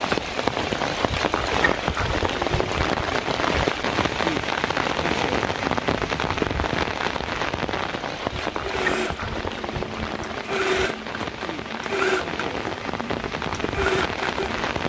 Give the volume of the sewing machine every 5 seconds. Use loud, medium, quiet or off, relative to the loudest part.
off, loud, loud.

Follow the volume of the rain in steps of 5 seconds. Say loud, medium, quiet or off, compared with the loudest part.
loud, loud, medium.